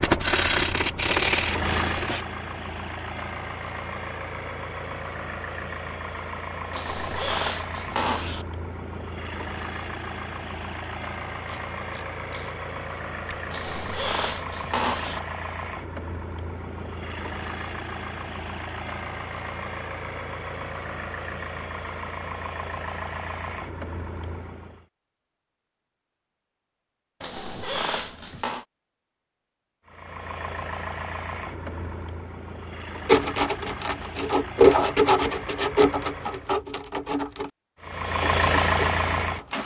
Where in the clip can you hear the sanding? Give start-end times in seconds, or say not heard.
0.0-2.2, 33.0-39.6.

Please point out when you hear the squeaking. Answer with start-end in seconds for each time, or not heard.
6.7-8.4, 13.5-15.2, 27.2-28.6.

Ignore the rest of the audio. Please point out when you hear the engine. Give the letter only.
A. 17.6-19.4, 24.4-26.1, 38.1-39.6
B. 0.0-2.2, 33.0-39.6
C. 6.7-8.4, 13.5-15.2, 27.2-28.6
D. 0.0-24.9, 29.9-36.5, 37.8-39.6
D.